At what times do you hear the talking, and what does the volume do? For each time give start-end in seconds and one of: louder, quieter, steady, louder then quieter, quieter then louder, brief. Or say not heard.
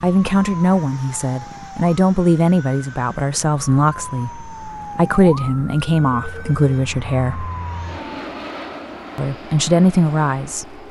0.0-7.5 steady
9.2-10.8 brief.